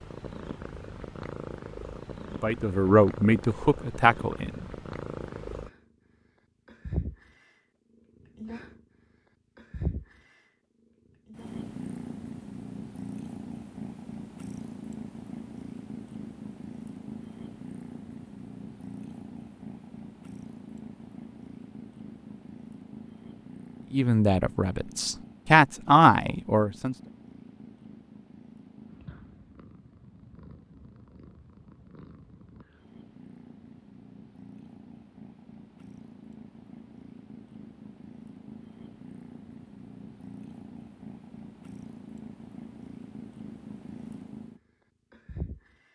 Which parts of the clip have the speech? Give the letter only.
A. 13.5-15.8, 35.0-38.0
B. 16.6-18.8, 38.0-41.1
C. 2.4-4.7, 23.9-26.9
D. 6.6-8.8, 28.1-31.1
C.